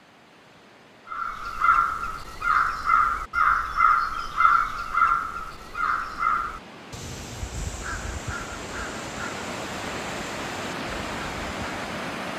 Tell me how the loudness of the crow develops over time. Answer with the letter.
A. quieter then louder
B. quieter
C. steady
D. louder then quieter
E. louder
B.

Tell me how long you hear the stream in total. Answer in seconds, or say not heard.
12 s.